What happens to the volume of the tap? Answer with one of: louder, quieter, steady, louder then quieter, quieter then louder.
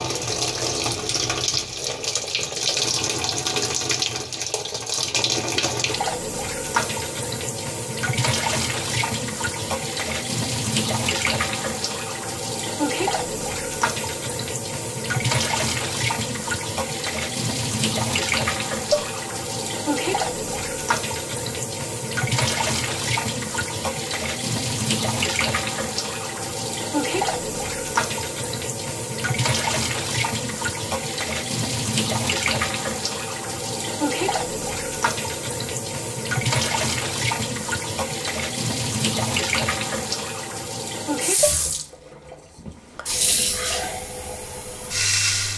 steady.